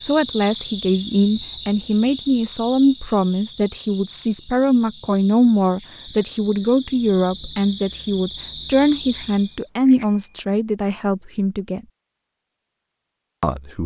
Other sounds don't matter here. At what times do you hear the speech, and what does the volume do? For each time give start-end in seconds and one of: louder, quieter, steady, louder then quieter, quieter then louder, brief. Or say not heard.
0.0-11.8 steady
13.4-13.8 brief.